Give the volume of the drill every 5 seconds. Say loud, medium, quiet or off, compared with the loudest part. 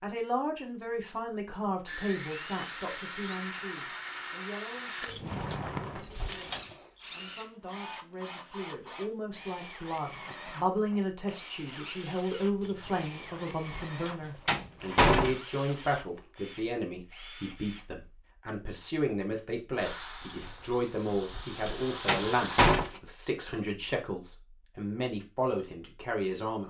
loud, medium, medium, medium, loud, off.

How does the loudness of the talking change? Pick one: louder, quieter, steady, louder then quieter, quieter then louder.
steady.